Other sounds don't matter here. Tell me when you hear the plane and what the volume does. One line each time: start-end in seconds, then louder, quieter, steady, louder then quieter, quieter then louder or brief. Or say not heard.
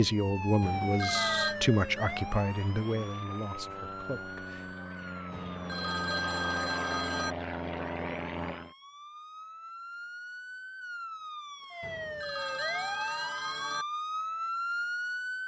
0.0-8.8 louder.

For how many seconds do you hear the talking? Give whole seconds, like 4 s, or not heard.
5 s.